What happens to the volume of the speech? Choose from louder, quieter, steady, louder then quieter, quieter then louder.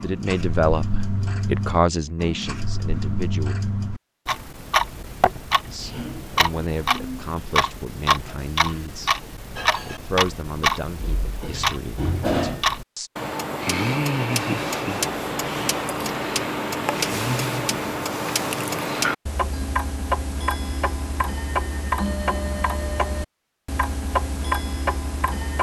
quieter.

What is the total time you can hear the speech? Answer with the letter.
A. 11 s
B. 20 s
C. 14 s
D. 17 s
A.